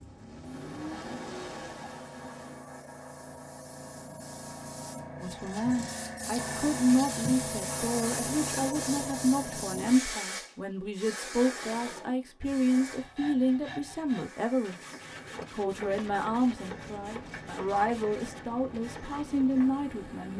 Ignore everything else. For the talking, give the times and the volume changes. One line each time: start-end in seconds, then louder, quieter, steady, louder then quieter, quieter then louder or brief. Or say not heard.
5.2-20.3 steady.